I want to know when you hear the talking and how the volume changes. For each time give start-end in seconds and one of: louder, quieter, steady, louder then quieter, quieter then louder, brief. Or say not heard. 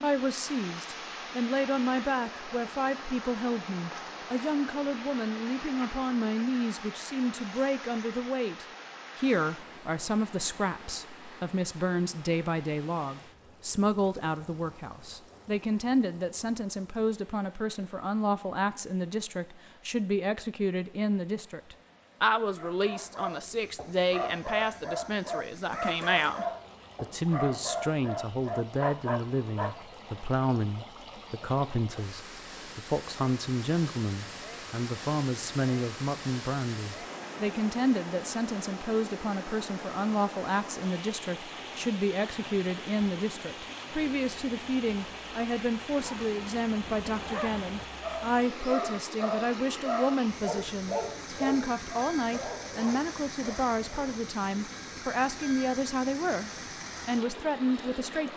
0.0-58.3 steady.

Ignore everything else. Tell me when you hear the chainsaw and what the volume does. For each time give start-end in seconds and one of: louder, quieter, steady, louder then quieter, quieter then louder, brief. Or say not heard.
not heard.